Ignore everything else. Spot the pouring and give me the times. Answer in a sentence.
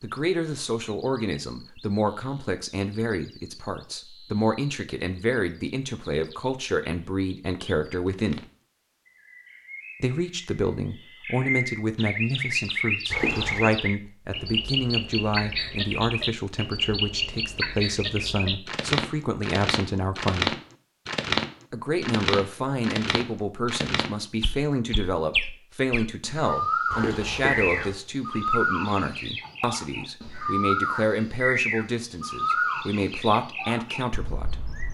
The pouring can be heard from 13.1 to 13.7 s and from 26.9 to 27.9 s.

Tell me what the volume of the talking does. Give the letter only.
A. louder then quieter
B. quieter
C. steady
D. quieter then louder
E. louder
C.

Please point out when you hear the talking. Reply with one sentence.
You can hear the talking from 0.0 to 8.4 s, from 10.0 to 20.6 s and from 21.7 to 34.8 s.